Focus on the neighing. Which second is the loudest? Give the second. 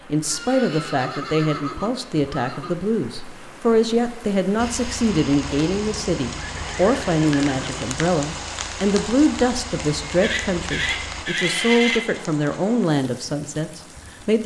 12 s.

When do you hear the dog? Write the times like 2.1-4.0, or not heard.
not heard.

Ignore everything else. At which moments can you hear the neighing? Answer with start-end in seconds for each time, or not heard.
0.2-2.8, 5.7-8.0, 10.2-12.1.